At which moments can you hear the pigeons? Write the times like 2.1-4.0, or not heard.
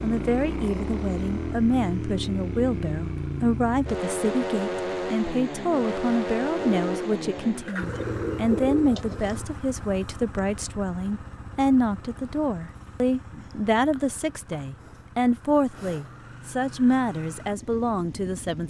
6.6-9.4.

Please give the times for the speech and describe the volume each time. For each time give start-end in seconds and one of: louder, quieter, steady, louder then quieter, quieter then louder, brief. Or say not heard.
0.0-18.6 steady.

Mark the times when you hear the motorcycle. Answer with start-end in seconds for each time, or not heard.
0.0-18.6.